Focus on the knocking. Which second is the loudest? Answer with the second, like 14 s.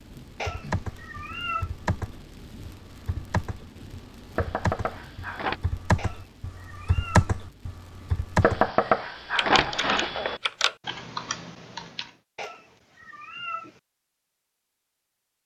9 s.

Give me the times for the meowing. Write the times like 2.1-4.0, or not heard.
0.3-1.7, 6.0-7.3, 12.3-13.8.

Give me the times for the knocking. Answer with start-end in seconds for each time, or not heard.
4.3-5.6, 8.4-10.4.